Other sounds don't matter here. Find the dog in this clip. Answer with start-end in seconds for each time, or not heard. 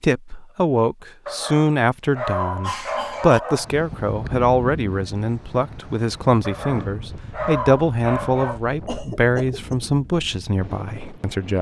1.2-3.7, 6.4-8.6.